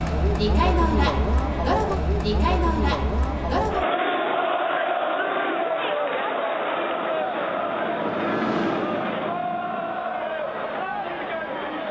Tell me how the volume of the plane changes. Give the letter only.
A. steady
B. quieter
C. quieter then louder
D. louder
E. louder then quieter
E.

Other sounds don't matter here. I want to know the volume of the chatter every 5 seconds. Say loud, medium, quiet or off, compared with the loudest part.
loud, loud, medium.